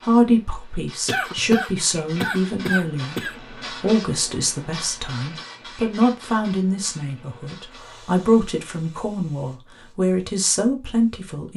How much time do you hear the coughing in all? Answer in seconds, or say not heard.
2 s.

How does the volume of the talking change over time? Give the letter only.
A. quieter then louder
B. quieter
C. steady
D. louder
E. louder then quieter
C.